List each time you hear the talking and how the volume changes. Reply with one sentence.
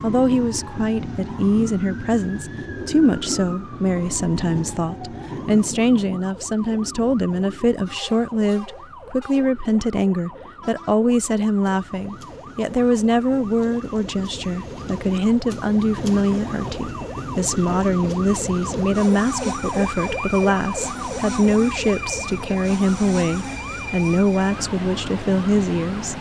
You can hear the talking from 0.0 to 26.1 s, at a steady volume.